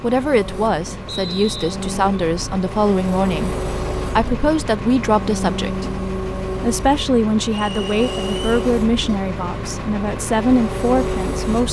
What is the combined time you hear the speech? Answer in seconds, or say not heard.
11 s.